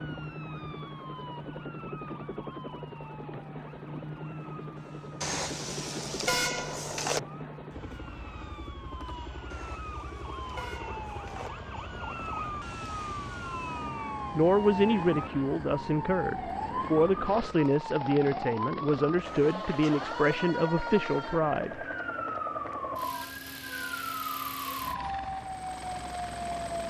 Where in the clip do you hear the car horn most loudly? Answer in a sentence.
The volume of the car horn peaks at 6 seconds.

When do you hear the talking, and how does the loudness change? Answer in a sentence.
You can hear the talking from 14.3 to 21.9 s, at a steady volume.